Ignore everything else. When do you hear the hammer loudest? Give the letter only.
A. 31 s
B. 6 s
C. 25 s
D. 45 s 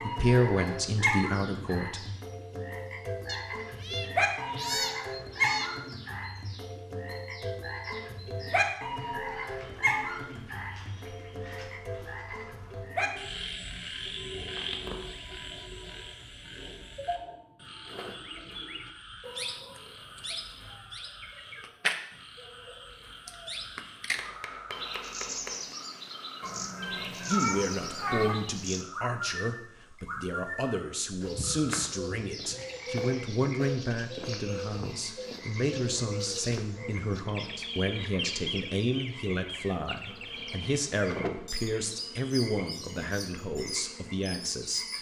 C.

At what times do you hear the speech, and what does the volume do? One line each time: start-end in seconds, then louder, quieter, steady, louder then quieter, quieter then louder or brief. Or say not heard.
0.0-2.1 brief
27.1-44.9 steady.